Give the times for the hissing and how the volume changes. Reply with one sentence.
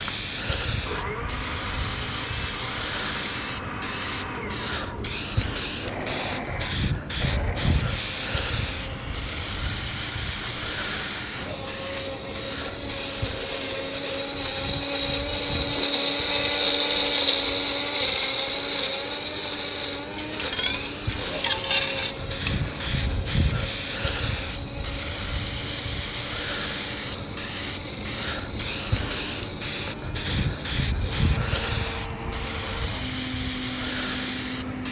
The hissing can be heard from 0.0 to 34.8 s, getting quieter then louder.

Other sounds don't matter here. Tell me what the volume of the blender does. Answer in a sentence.
The volume of the blender goes up, then down.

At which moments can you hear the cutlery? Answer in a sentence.
You can hear the cutlery from 20.1 to 22.9 s.